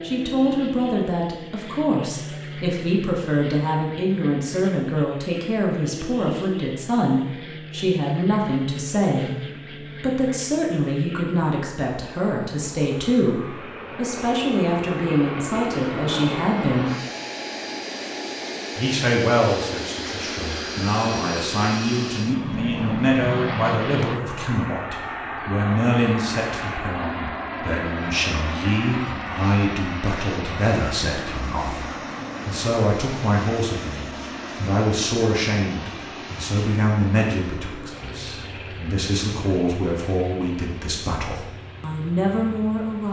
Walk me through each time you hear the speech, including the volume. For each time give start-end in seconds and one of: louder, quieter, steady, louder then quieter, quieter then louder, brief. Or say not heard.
0.0-16.9 steady
18.8-43.0 steady.